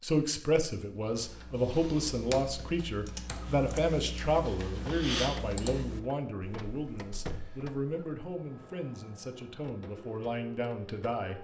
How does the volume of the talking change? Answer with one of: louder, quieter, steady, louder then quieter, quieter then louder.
quieter.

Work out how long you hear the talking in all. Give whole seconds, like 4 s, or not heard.
11 s.